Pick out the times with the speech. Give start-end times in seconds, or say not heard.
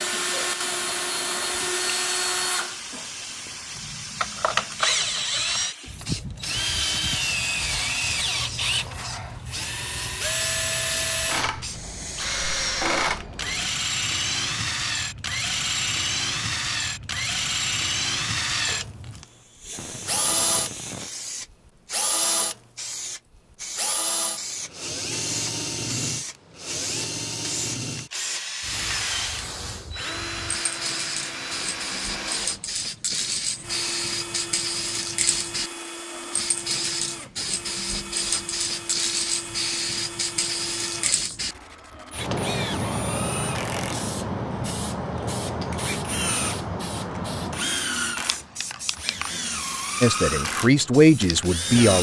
50.0-51.9.